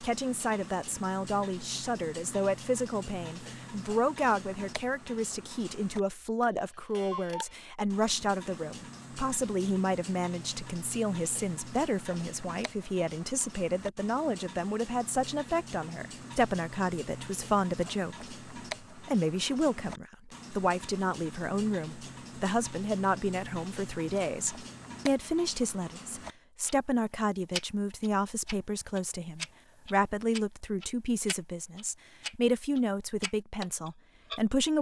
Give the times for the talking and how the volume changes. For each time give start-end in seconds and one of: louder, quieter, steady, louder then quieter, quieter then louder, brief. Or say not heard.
0.0-34.7 steady.